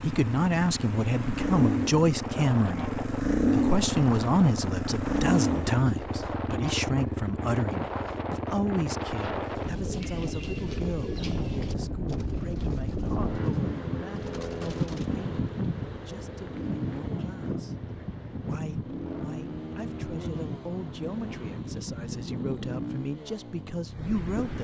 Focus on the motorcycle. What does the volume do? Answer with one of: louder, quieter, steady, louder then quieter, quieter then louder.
quieter.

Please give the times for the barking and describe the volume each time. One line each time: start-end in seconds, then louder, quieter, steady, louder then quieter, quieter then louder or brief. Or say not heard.
not heard.